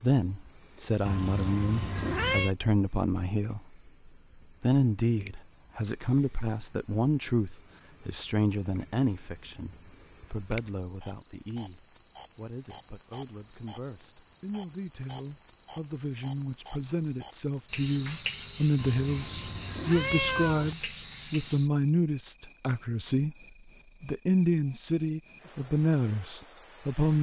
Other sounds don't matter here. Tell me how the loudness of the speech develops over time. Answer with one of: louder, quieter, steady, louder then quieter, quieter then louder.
quieter then louder.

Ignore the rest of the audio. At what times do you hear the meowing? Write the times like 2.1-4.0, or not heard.
1.1-2.5, 18.8-20.8.